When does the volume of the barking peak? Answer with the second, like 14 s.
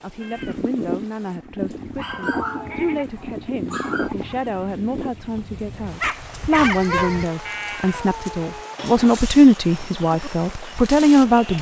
7 s.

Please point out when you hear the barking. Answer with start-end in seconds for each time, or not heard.
1.9-4.1, 6.0-7.6.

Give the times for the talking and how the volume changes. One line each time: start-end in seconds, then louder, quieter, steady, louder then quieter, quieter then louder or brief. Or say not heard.
0.0-11.5 louder.